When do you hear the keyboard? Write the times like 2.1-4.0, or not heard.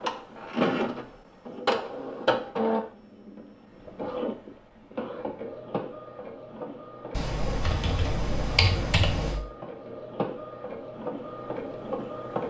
7.1-9.4.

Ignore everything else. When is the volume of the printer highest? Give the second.
2 s.